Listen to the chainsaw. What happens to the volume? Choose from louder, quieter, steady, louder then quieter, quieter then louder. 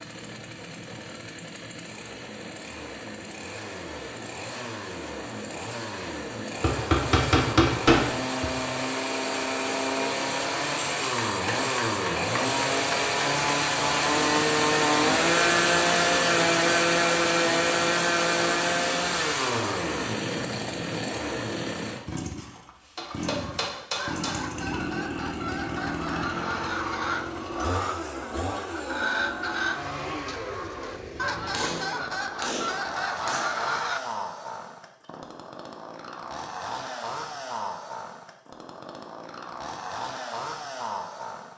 louder then quieter.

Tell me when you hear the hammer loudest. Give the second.
8 s.